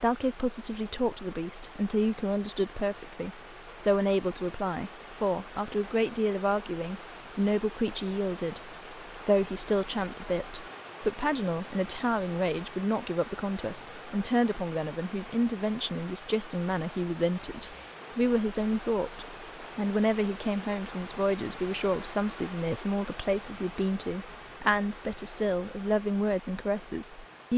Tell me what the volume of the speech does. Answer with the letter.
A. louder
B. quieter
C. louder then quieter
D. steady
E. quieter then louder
D.